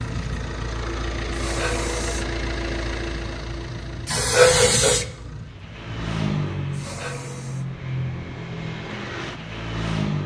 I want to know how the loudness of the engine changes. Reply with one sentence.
The loudness of the engine goes down, then up.